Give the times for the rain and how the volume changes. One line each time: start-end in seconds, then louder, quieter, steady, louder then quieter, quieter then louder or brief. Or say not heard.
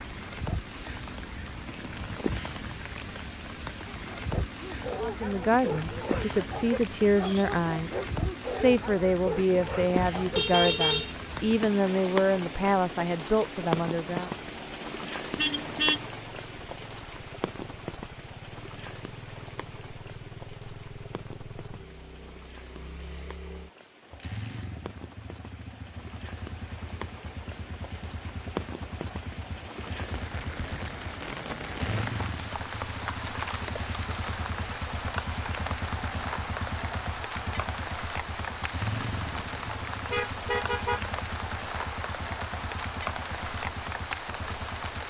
0.0-45.0 quieter then louder.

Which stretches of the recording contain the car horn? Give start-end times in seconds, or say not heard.
10.3-11.2, 15.3-16.1, 39.5-41.1.